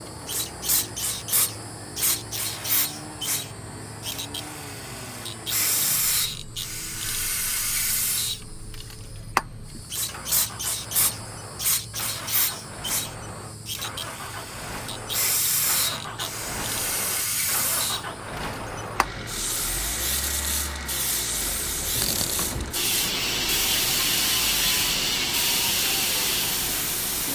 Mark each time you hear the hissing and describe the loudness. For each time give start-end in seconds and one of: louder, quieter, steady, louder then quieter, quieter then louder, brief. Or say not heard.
0.0-27.3 steady.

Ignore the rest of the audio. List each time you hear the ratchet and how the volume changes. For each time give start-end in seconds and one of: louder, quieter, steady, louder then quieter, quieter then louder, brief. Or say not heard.
21.2-26.8 louder.